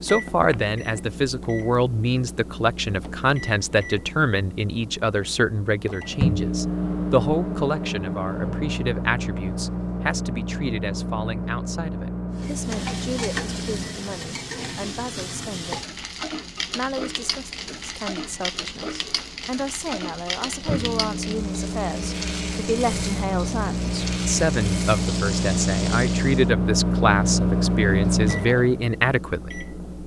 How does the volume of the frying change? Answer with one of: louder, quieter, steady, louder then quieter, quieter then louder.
steady.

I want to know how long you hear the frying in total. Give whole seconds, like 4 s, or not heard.
14 s.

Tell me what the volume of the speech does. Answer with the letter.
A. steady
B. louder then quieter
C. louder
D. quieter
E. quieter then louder
E.